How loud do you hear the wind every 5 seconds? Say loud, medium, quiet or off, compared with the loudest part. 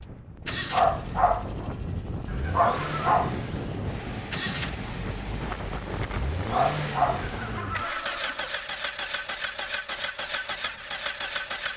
loud, loud, off.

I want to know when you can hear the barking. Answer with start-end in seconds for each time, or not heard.
0.7-1.7, 2.5-3.4, 6.5-7.2.